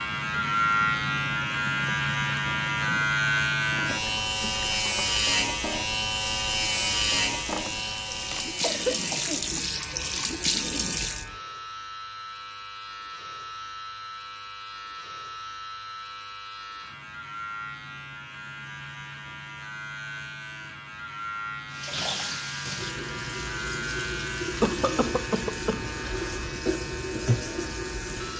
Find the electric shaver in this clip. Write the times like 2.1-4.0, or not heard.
0.0-28.3.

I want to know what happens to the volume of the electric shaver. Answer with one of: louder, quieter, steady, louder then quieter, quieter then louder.
quieter.